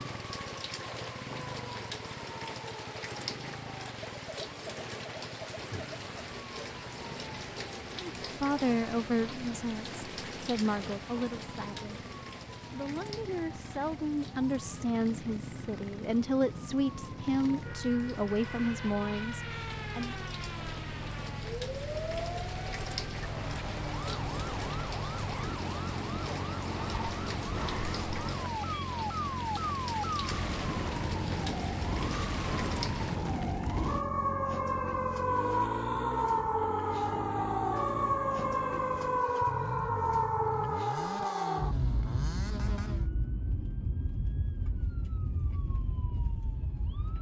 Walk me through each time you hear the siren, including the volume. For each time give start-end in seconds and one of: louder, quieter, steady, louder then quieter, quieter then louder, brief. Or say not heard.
0.0-47.1 louder.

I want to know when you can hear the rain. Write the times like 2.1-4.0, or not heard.
0.0-33.2.